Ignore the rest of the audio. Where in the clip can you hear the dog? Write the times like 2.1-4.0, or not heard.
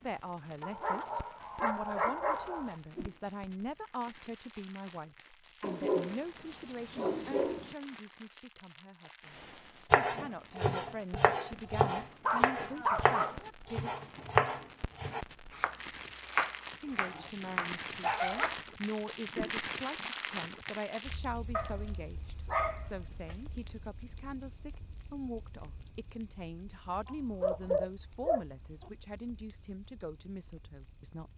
0.6-2.8, 5.6-7.8, 11.6-13.5, 16.9-18.5, 21.5-23.4, 27.1-28.9.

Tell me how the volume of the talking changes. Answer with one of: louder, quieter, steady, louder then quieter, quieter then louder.
steady.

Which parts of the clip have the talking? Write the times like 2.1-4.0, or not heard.
0.0-13.9, 16.8-31.3.